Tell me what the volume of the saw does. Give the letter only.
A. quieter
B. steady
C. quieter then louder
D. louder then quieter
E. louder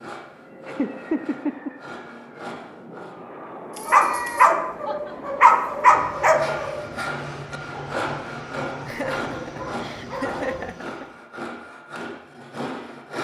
E.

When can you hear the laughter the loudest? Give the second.
1 s.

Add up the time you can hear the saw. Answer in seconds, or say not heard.
10 s.